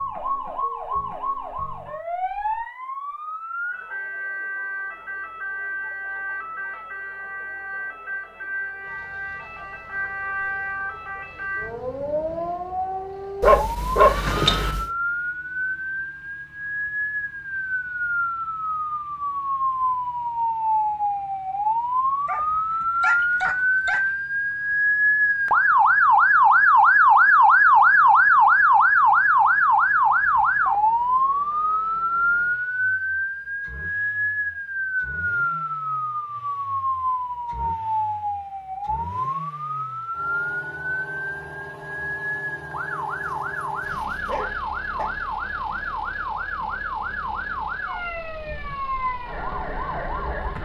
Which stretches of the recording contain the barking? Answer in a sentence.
You can hear the barking from 13.4 to 14.8 s, from 22.2 to 24.1 s and from 43.2 to 45.1 s.